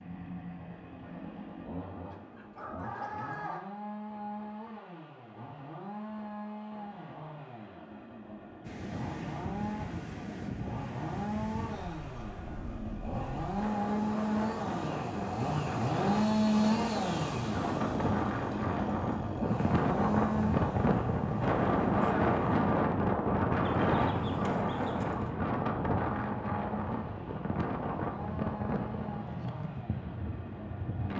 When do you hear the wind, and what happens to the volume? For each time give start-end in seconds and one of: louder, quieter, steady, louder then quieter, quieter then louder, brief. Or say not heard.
8.6-31.1 louder then quieter.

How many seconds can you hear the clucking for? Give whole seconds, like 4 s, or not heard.
3 s.